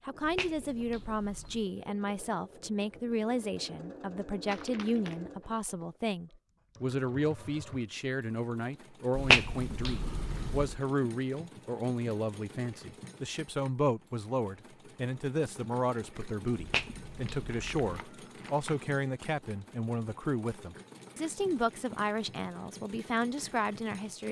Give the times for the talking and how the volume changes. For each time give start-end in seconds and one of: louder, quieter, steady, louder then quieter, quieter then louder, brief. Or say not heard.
0.1-24.2 steady.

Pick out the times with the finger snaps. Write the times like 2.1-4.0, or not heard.
0.2-1.6, 9.2-10.8, 16.6-17.9.